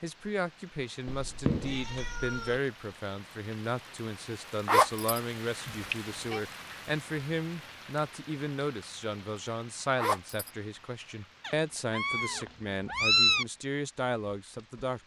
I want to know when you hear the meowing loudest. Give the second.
13 s.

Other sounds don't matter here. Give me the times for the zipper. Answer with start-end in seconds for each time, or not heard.
4.7-5.2, 9.9-10.5.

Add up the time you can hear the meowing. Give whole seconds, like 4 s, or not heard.
4 s.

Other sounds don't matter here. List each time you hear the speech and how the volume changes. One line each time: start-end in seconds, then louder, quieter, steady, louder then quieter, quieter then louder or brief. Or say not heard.
0.0-15.0 steady.